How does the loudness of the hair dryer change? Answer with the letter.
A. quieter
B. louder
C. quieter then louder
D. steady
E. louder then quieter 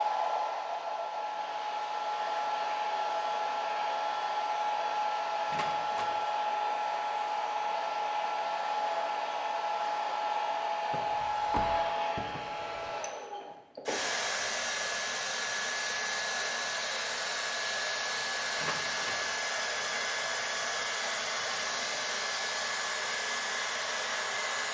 D.